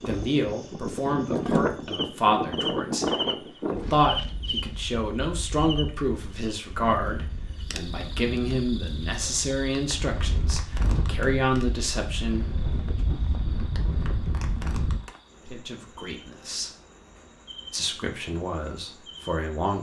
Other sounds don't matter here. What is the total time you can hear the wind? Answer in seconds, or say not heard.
15 s.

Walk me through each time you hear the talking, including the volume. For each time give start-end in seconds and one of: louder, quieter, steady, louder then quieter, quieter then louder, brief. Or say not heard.
0.1-12.9 steady
15.4-16.7 brief
17.7-19.7 brief.